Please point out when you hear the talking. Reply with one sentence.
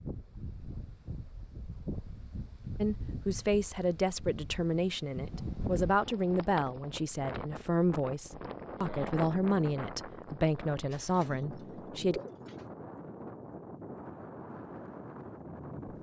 You can hear the talking from 2.8 to 12.2 s.